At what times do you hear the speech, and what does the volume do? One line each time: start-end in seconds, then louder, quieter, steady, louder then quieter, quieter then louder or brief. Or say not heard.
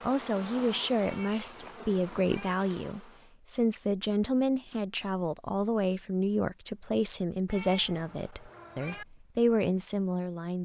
0.0-10.5 steady.